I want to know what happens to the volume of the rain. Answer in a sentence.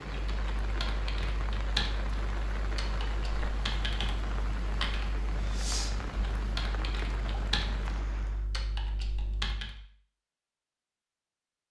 The loudness of the rain stays about the same.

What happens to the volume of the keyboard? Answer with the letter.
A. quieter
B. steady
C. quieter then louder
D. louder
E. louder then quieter
A.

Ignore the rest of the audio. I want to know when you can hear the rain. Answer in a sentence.
The rain can be heard from 0.0 to 8.5 s.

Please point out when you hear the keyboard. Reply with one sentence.
You can hear the keyboard from 0.1 to 9.8 s.